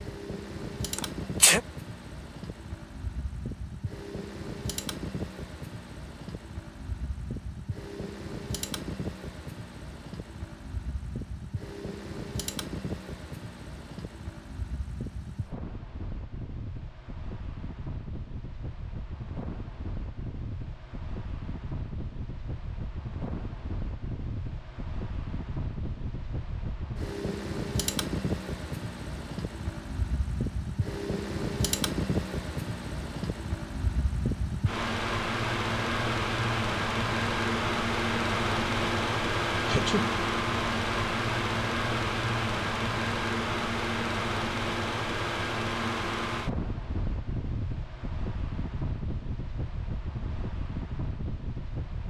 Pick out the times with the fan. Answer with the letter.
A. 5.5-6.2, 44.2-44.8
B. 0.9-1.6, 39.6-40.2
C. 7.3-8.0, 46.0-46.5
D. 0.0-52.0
D.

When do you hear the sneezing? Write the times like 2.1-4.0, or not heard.
0.9-1.6, 39.6-40.2.